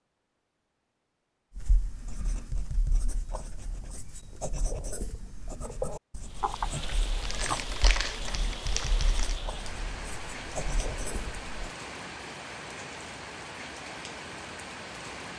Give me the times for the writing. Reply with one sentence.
The writing can be heard from 1.6 to 11.7 s.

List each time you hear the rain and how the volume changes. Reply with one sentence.
The rain can be heard from 6.2 to 15.3 s, at a steady volume.